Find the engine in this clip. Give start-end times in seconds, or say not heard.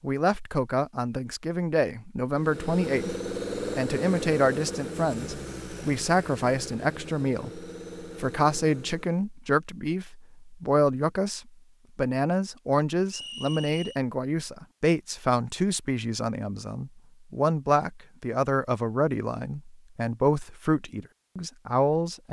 2.3-9.2.